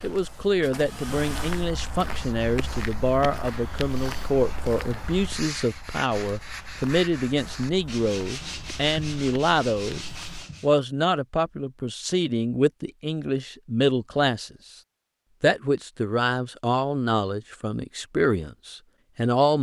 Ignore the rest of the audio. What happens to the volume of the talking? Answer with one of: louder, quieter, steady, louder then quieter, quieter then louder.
steady.